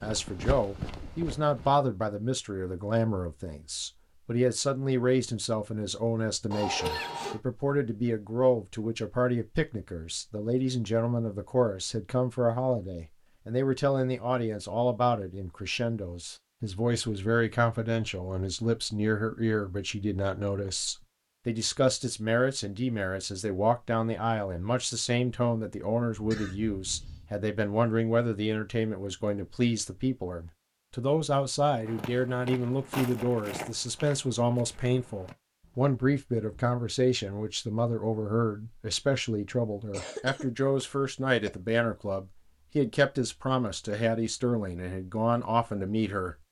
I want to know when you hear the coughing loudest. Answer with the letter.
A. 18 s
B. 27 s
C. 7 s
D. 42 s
C.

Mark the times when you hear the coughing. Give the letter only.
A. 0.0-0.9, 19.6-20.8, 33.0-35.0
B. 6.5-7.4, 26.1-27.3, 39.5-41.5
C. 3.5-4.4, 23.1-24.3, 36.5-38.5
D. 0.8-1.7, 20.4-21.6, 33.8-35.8
B.